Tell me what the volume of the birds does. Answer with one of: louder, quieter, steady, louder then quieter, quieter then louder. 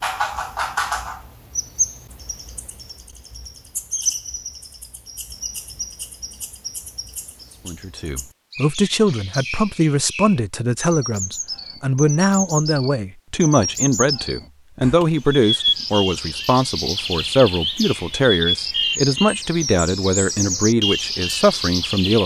quieter then louder.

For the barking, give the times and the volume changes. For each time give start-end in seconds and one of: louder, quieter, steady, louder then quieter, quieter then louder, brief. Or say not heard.
not heard.